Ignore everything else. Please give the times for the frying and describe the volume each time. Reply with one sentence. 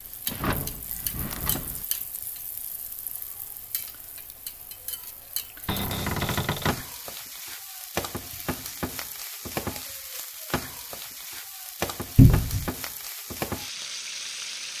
You can hear the frying from 0.0 to 14.7 s, getting louder.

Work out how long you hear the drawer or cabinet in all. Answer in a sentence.
The drawer or cabinet can be heard for 3 seconds in total.